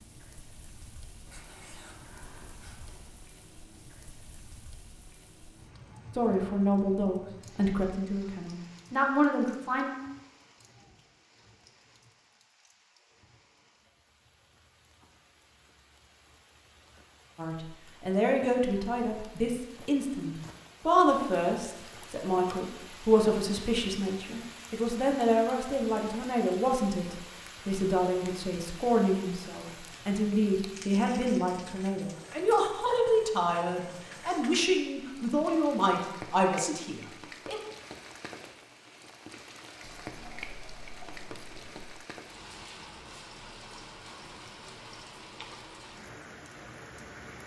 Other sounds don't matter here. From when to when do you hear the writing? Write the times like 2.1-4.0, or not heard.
1.2-3.1, 39.8-41.9.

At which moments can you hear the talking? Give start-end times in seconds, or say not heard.
6.2-9.9, 17.4-37.6.